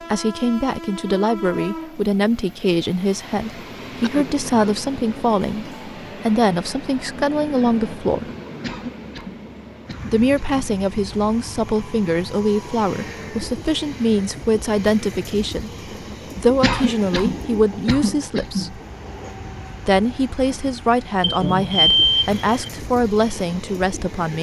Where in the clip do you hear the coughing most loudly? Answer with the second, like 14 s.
17 s.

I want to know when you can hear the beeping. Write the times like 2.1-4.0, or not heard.
21.2-22.7.